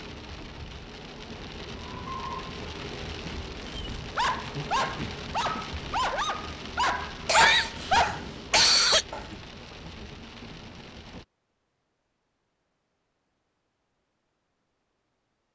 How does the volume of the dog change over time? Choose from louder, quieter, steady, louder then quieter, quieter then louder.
louder.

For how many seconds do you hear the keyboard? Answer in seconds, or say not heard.
not heard.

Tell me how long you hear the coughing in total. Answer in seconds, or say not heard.
2 s.